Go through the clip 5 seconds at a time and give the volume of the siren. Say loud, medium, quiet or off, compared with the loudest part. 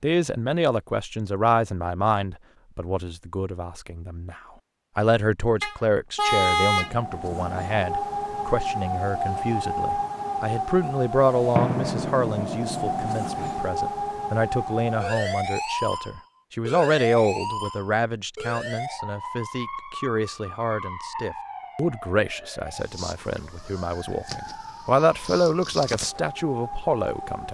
off, loud, loud, loud, medium, medium.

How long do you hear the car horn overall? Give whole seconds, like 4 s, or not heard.
2 s.